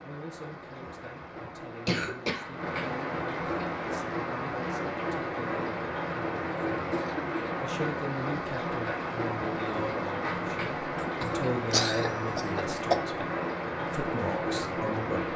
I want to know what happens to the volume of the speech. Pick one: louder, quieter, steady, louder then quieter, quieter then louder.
louder.